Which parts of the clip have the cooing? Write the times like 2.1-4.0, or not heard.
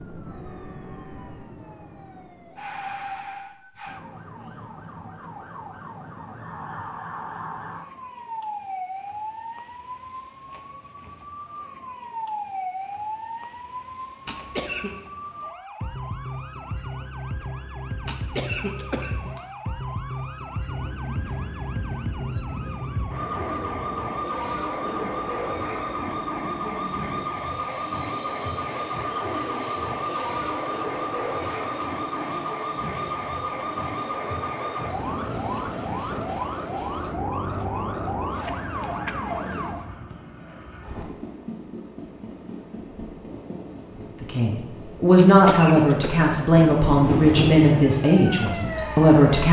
not heard.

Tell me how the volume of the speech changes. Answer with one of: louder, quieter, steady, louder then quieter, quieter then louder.
quieter.